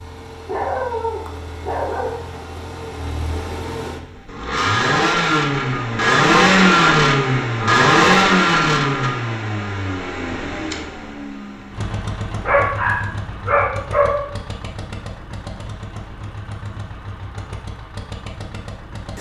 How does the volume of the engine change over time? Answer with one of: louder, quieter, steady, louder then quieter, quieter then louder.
louder then quieter.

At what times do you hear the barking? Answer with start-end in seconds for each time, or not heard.
0.5-2.2, 12.4-14.2.